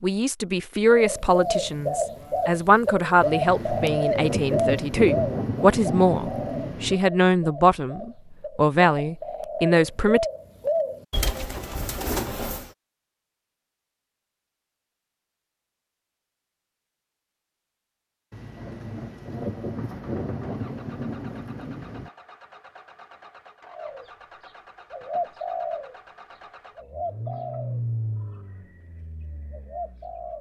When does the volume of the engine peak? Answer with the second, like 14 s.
28 s.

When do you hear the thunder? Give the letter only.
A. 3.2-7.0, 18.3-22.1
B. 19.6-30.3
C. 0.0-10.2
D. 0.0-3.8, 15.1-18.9
A.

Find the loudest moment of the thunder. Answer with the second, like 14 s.
5 s.